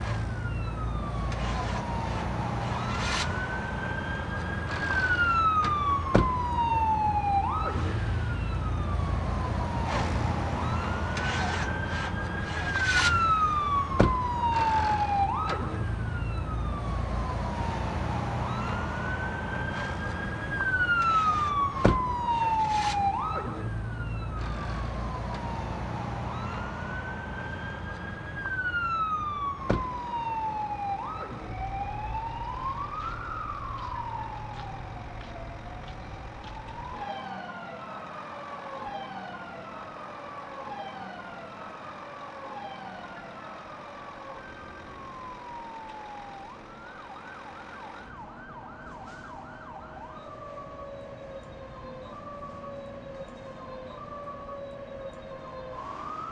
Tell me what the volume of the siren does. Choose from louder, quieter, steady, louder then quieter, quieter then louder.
quieter.